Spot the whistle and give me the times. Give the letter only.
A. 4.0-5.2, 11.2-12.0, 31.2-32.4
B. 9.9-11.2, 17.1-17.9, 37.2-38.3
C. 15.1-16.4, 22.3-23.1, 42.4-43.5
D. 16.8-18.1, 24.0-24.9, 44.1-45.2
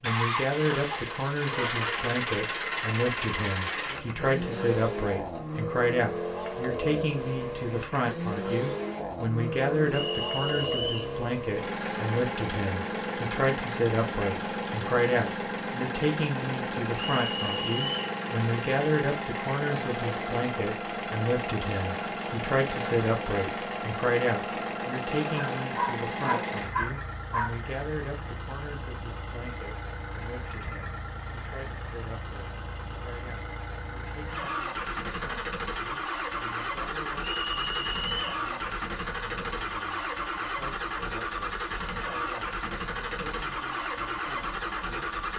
B.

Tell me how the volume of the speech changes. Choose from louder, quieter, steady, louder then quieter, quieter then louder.
quieter.